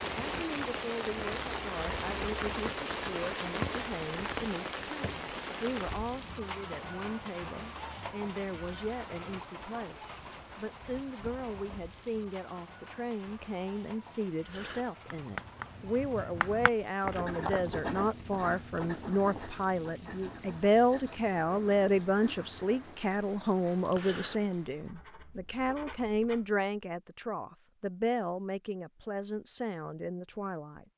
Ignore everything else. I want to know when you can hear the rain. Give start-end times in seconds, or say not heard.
0.0-24.9.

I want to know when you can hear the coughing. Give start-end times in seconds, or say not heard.
not heard.